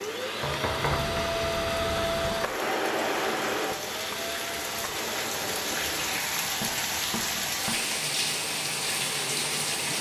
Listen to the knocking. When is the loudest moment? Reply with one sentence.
The volume of the knocking peaks at 1 second.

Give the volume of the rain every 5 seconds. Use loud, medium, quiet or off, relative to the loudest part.
medium, loud.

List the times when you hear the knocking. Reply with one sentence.
The knocking can be heard from 0.3 to 1.2 s and from 6.6 to 7.8 s.